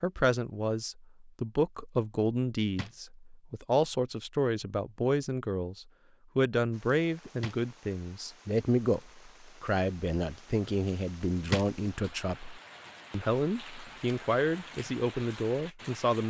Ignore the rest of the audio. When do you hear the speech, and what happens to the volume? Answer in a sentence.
You can hear the speech from 0.0 to 16.2 s, at a steady volume.